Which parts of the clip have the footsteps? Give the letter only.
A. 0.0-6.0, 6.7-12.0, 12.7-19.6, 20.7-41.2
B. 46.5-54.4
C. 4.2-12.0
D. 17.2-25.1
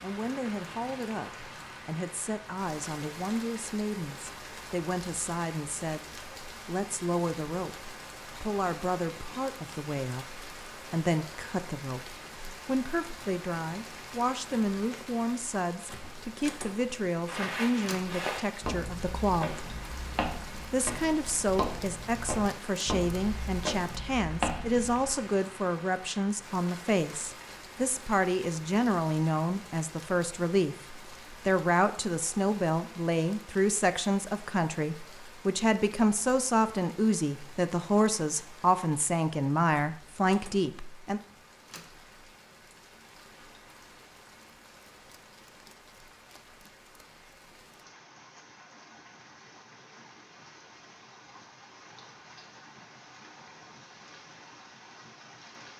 D.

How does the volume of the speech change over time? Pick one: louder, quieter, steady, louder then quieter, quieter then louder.
louder.